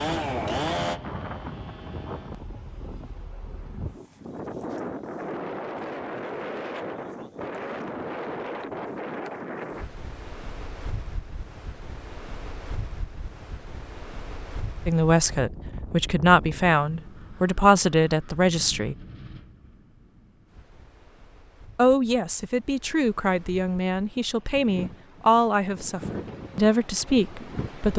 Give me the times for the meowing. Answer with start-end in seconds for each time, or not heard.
not heard.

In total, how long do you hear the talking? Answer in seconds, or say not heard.
10 s.